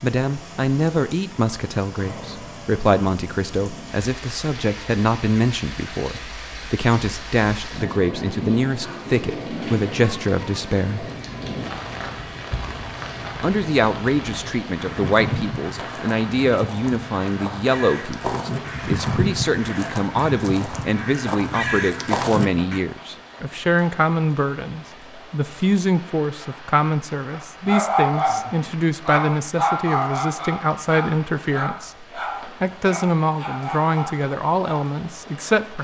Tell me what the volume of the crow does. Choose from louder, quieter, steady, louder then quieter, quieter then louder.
louder.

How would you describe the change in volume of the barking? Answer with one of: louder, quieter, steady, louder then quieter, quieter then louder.
quieter.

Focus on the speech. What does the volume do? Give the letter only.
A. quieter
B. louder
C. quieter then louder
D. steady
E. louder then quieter
D.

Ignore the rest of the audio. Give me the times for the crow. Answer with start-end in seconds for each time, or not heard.
11.0-22.8.